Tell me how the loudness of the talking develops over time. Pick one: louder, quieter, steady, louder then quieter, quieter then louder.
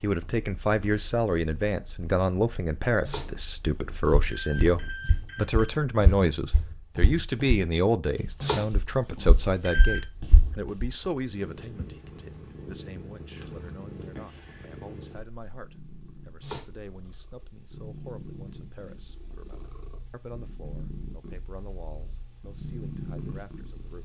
quieter.